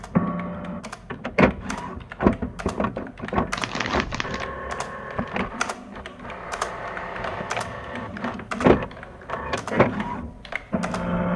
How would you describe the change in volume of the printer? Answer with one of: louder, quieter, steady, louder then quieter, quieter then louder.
quieter then louder.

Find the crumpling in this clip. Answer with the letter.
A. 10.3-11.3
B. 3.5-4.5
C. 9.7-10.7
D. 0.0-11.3
B.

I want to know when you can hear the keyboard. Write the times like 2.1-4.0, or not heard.
0.0-11.2.